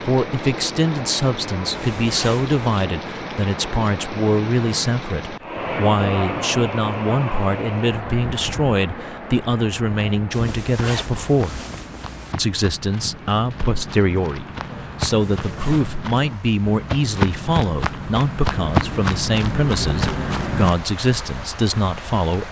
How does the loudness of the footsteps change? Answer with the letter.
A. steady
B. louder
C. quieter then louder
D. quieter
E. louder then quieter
B.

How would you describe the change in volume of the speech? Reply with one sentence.
The volume of the speech stays about the same.